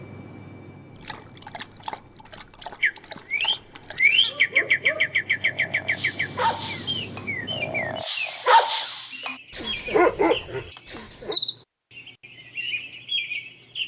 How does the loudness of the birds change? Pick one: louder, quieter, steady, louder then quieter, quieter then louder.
quieter then louder.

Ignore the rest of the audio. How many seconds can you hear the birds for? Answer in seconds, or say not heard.
11 s.